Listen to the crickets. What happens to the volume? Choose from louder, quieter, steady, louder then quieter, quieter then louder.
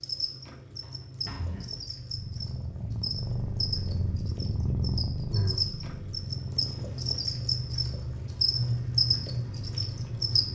louder.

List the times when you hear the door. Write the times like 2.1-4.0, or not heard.
0.8-1.9.